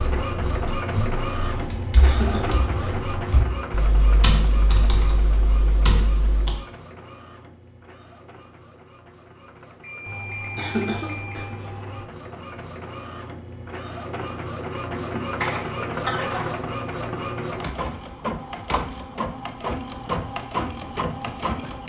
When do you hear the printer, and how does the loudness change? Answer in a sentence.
The printer can be heard from 0.0 to 21.8 s, getting quieter then louder.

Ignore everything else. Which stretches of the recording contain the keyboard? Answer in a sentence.
The keyboard can be heard from 0.0 to 6.6 s.